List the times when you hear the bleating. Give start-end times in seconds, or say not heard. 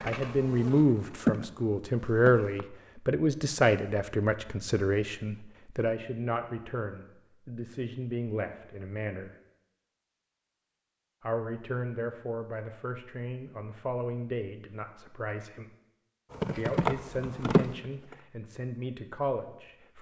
not heard.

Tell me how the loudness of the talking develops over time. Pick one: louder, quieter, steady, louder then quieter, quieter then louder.
quieter.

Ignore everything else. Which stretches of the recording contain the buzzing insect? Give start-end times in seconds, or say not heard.
0.0-2.6, 16.3-18.2.